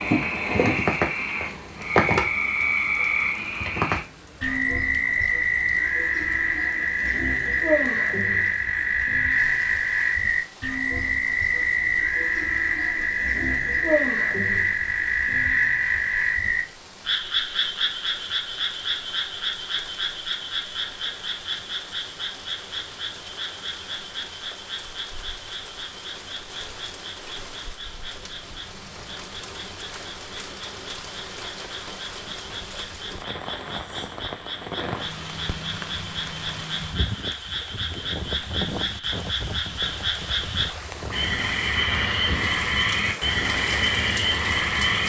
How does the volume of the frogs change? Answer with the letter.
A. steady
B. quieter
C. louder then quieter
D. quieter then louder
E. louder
D.